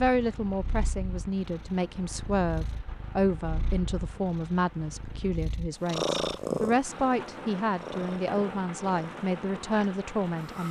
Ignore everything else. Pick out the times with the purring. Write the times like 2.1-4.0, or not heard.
0.0-10.6.